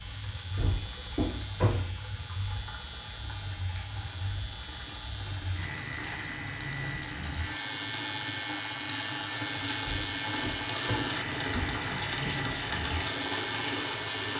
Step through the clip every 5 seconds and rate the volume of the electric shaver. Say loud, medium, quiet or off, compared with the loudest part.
medium, loud, loud.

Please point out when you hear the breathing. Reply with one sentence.
The breathing can't be heard in this clip.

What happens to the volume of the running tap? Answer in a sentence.
The volume of the running tap goes up.